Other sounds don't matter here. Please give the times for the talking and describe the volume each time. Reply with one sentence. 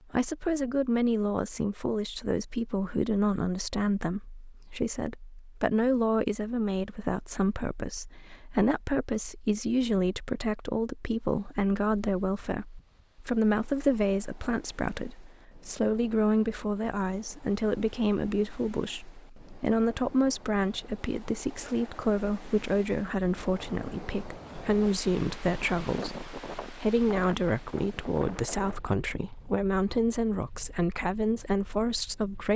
The talking can be heard from 0.1 to 32.5 s, at a steady volume.